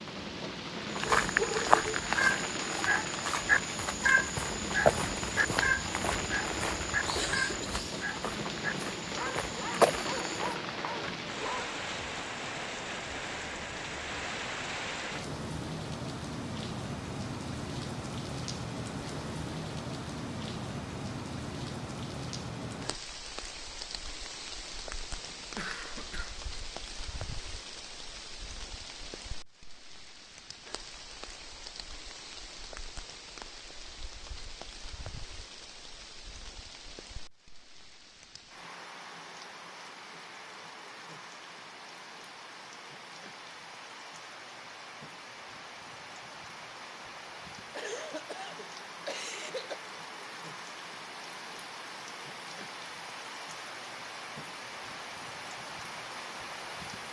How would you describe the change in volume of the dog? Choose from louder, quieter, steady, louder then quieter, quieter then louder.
quieter.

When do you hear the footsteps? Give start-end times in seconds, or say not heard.
0.9-10.6.